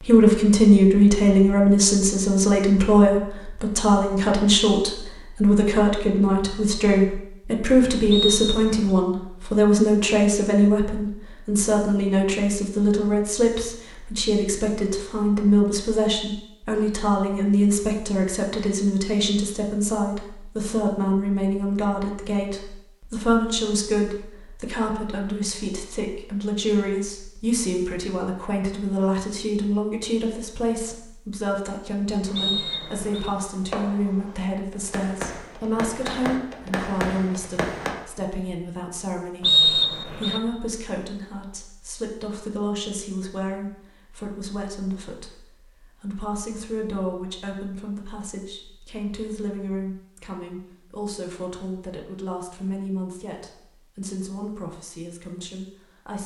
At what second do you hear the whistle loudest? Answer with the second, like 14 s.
40 s.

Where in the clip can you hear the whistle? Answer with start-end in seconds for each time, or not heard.
8.1-8.8, 32.4-33.3, 39.4-40.4.